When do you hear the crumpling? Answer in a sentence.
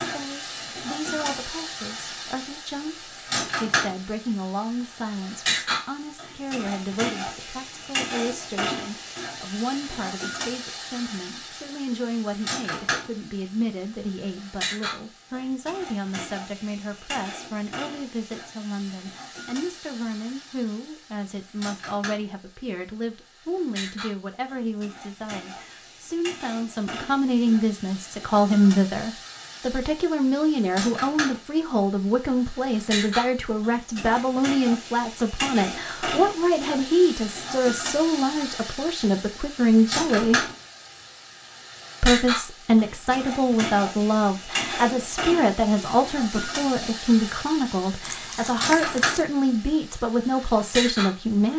The crumpling can be heard from 48.0 to 49.2 s.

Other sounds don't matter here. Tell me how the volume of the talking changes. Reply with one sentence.
The loudness of the talking goes up.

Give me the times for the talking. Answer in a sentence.
The talking can be heard from 0.0 to 40.5 s and from 42.0 to 51.5 s.